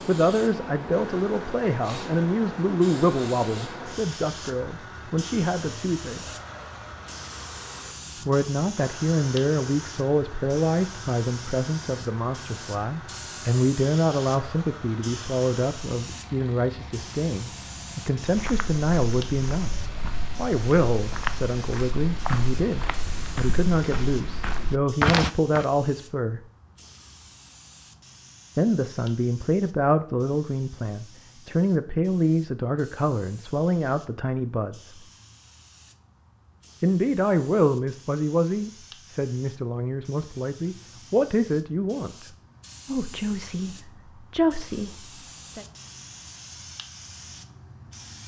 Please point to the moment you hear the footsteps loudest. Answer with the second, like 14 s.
25 s.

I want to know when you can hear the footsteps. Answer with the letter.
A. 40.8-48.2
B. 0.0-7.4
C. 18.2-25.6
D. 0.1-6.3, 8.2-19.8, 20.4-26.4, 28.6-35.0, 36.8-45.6
C.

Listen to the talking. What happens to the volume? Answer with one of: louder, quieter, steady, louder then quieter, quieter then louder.
steady.